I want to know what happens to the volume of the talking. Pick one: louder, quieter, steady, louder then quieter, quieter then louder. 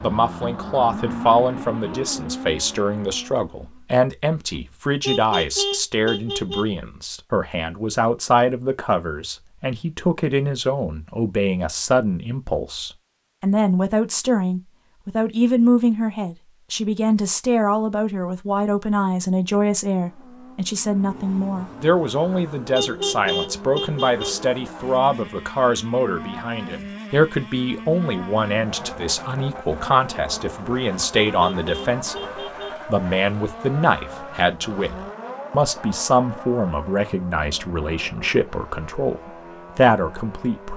steady.